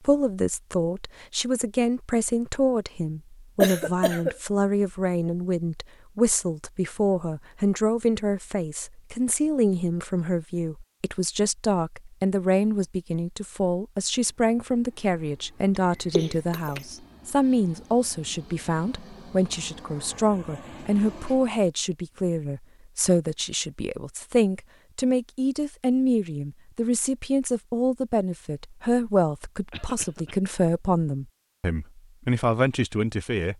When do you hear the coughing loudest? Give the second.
4 s.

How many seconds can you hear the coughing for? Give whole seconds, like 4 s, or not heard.
2 s.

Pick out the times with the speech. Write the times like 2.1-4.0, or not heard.
0.1-33.5.